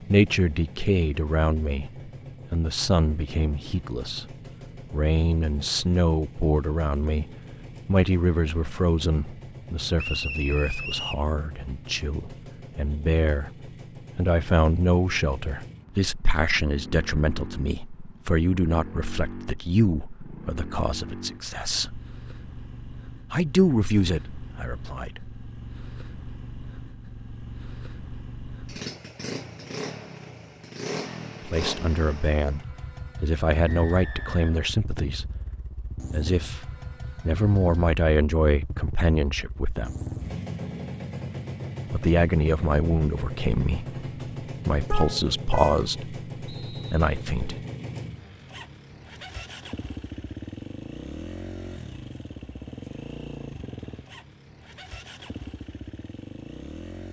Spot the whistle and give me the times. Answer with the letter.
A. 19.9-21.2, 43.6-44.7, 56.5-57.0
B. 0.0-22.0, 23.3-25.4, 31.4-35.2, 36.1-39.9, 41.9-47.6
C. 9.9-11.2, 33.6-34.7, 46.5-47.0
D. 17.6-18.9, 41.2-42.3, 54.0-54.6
C.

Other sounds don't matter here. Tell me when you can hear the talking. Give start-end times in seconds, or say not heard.
0.0-22.0, 23.3-25.4, 31.4-35.2, 36.1-39.9, 41.9-47.6.